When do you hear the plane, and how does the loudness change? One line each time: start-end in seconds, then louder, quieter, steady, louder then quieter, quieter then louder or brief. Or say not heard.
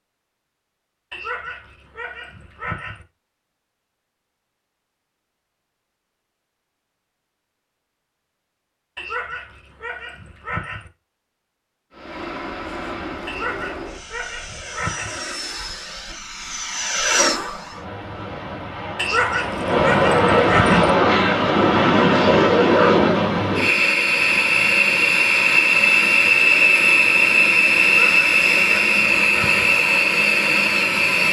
11.9-31.2 louder.